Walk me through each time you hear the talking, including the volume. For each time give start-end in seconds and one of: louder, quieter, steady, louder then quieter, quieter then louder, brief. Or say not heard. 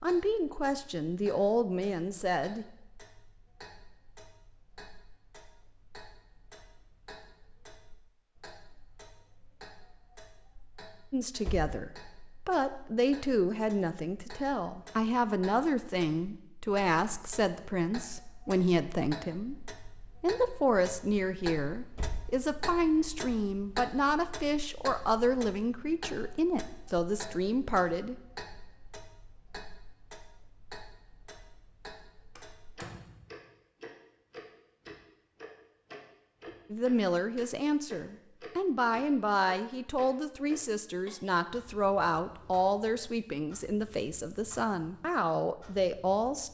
0.0-2.6 brief
11.1-28.3 steady
36.7-46.4 steady.